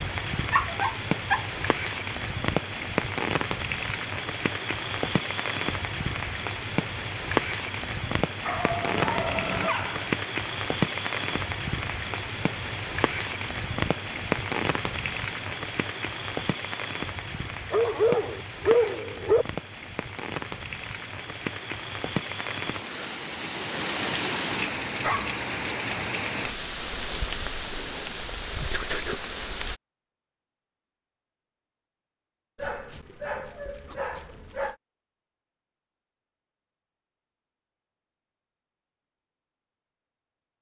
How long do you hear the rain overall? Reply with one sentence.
You can hear the rain for 30 seconds altogether.